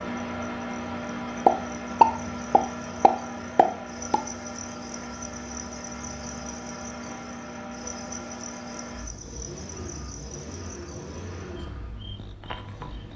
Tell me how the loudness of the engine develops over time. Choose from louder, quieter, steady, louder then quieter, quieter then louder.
quieter.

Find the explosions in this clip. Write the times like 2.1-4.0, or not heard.
1.4-4.2.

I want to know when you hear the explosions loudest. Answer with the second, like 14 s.
2 s.